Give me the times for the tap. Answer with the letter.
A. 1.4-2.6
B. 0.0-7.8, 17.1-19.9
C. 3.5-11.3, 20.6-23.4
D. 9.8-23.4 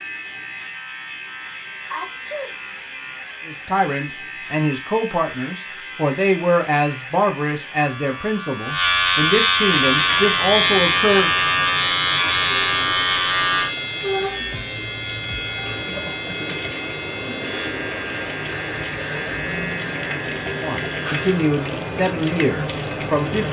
D.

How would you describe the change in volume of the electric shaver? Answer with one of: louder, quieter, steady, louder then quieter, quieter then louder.
louder then quieter.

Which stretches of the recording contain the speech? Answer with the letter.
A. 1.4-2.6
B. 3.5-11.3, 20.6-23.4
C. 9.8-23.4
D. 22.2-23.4
B.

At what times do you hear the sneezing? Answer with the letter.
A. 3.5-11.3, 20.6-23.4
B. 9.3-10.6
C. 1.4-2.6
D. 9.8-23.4
C.